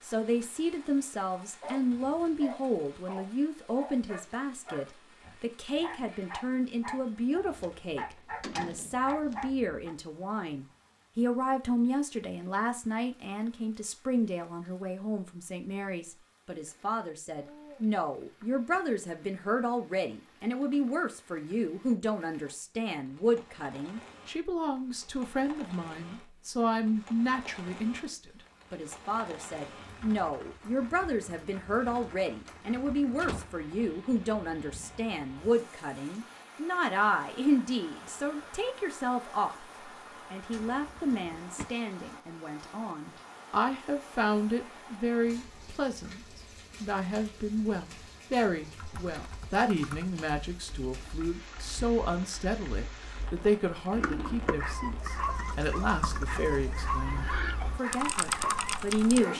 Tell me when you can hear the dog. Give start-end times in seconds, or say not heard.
1.4-9.9, 54.5-59.3.